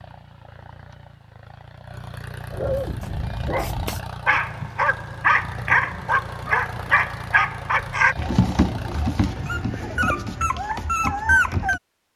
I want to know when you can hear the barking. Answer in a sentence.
You can hear the barking from 2.5 to 11.8 s.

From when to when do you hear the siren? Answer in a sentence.
The siren can't be heard in this clip.